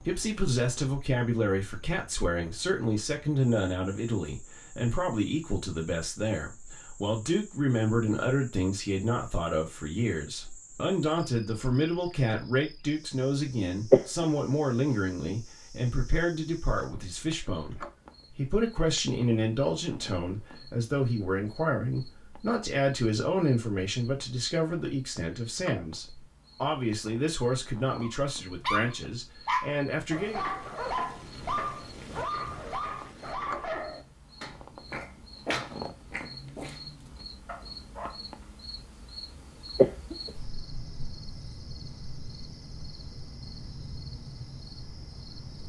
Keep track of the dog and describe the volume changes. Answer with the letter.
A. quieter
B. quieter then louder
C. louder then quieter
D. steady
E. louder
A.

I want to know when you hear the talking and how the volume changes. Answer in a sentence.
You can hear the talking from 0.0 to 30.4 s, at a steady volume.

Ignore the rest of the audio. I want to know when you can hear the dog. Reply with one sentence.
You can hear the dog from 28.0 to 38.2 s.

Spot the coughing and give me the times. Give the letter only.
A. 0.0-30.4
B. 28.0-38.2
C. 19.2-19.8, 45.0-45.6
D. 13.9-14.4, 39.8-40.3
D.